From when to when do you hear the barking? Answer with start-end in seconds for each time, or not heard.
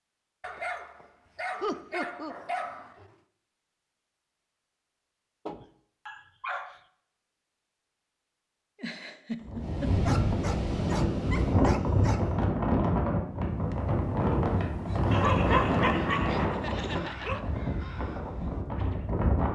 0.4-3.1, 5.5-6.8, 10.0-12.4, 15.1-17.4.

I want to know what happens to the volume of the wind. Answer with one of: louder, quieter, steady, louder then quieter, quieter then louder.
quieter.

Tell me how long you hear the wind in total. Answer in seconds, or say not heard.
10 s.